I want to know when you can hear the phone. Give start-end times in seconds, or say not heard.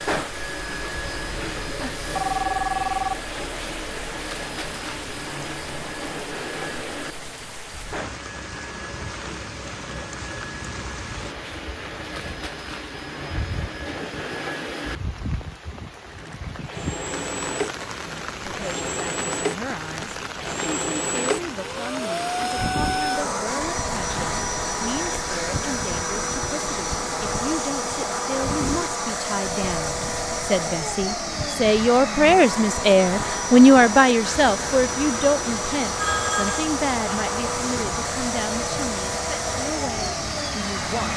1.8-3.3, 36.0-36.7.